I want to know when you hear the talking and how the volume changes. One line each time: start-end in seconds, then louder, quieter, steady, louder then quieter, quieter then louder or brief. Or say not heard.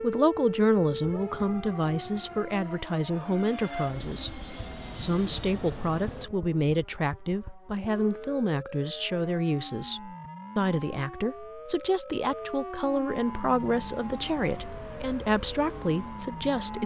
0.0-16.8 steady.